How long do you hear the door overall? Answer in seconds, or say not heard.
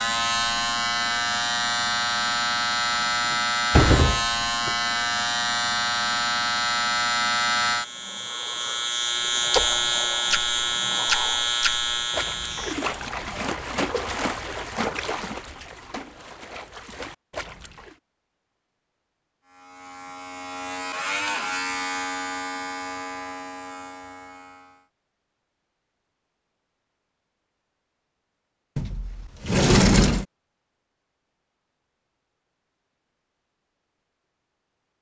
3 s.